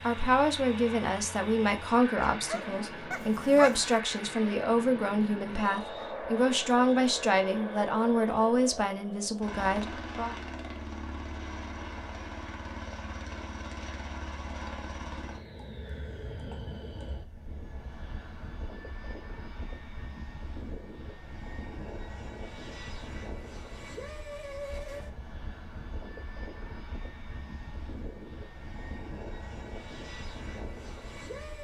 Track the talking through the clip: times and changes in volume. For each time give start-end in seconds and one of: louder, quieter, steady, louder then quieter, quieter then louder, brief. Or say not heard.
0.0-10.3 steady.